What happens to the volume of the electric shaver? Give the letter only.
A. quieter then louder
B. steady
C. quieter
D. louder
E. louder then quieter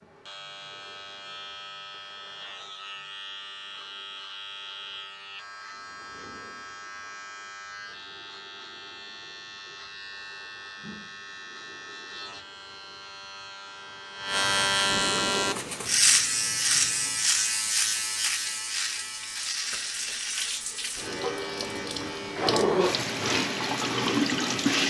E.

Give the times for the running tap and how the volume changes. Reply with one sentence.
The running tap can be heard from 15.4 to 24.8 s, getting louder.